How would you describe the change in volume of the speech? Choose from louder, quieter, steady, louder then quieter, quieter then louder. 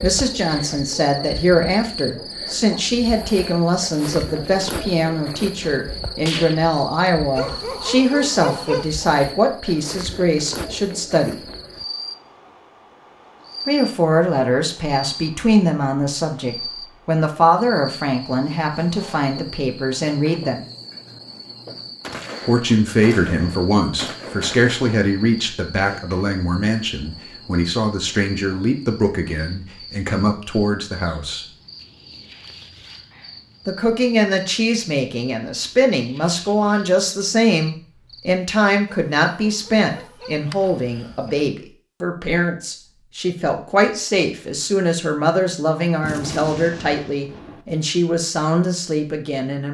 steady.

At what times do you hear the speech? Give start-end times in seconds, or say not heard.
0.0-11.4, 13.7-20.6, 22.4-31.4, 33.6-49.6.